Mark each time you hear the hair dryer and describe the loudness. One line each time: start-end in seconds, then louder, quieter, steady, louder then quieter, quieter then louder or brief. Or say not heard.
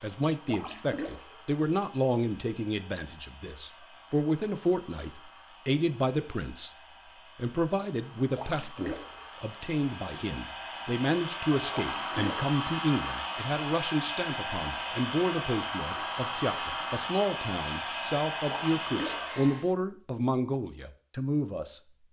0.0-19.7 louder.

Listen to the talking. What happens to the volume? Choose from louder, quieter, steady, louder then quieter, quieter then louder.
steady.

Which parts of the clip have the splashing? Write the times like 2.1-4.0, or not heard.
0.5-1.4, 8.3-9.2, 11.9-12.5, 18.5-19.4.